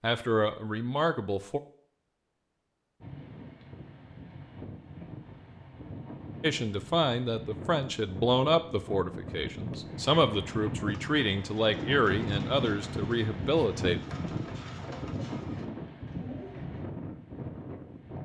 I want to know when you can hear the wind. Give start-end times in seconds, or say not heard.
3.0-18.2.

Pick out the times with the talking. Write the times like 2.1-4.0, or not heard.
0.0-1.6, 6.4-14.0.